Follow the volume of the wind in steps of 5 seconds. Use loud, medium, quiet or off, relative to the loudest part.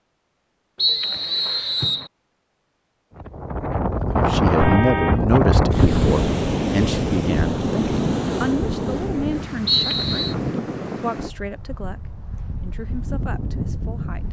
loud, loud, medium.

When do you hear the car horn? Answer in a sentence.
The car horn can be heard from 4.6 to 5.2 s.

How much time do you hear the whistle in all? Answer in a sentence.
The whistle can be heard for 2 seconds in total.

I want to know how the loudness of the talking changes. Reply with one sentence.
The loudness of the talking goes down.